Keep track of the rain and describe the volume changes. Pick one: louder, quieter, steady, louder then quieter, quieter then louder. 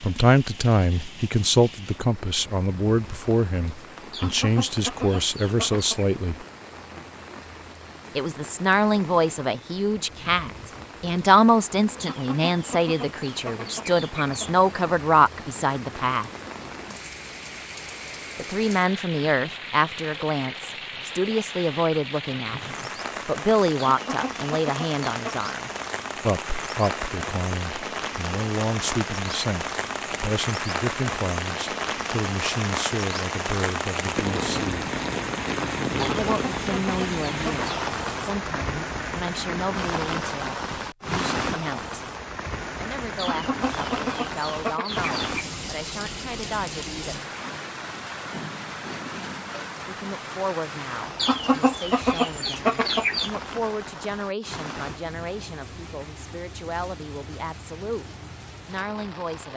louder then quieter.